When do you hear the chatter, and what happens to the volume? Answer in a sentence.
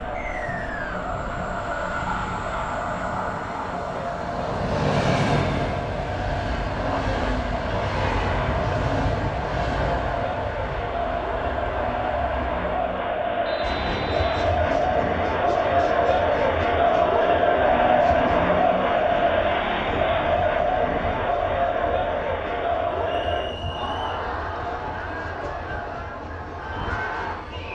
The chatter can be heard from 0.0 to 27.7 s, getting louder then quieter.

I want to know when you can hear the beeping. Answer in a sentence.
The beeping can't be heard in this clip.